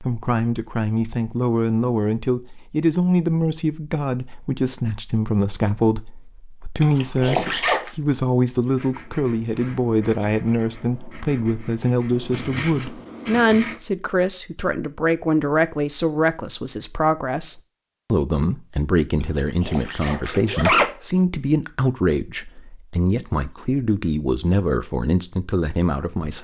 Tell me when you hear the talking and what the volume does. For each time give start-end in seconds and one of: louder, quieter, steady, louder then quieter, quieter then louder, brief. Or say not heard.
0.0-26.3 steady.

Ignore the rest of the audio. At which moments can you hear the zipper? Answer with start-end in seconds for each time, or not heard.
6.8-7.9, 19.6-20.9.